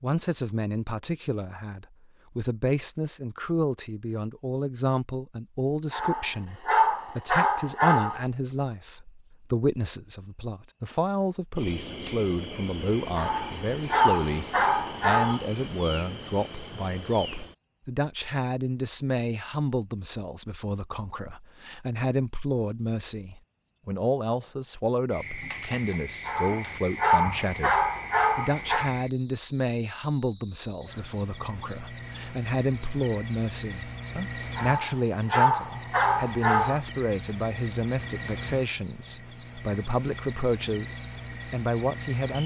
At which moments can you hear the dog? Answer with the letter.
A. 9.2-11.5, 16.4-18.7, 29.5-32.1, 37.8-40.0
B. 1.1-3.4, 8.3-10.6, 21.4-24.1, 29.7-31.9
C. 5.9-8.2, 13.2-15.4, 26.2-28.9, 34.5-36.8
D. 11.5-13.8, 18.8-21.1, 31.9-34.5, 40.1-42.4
C.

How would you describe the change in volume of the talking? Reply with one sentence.
The loudness of the talking stays about the same.